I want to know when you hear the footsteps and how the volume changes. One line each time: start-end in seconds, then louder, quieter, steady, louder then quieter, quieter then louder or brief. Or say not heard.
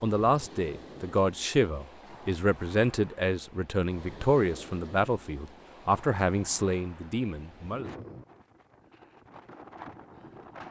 not heard.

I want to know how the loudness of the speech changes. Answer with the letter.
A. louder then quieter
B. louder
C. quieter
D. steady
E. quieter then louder
D.